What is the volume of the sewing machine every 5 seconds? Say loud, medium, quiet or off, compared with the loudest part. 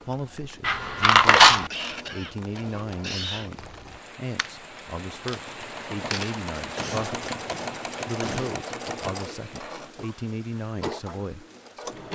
medium, loud, loud.